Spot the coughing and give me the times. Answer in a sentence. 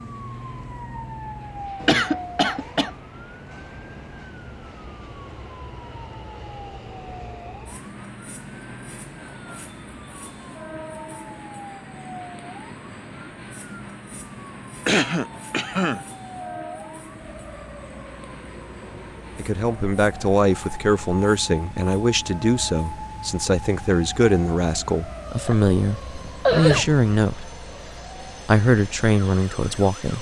You can hear the coughing from 1.8 to 2.9 s, from 14.8 to 16.1 s and from 25.4 to 26.9 s.